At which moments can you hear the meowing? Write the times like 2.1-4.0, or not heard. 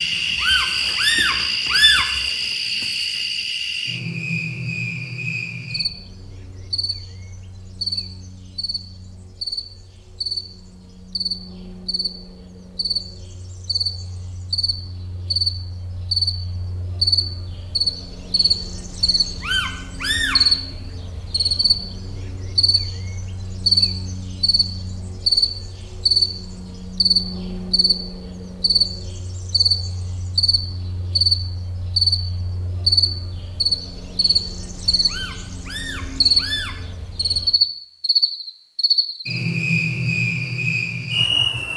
0.3-2.2, 19.4-20.4, 35.0-36.9.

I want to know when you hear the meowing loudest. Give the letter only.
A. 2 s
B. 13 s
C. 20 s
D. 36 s
A.